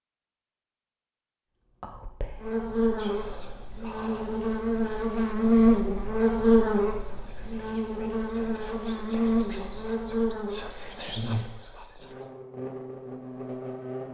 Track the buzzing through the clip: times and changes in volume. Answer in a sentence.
The buzzing can be heard from 2.4 to 14.0 s, getting louder then quieter.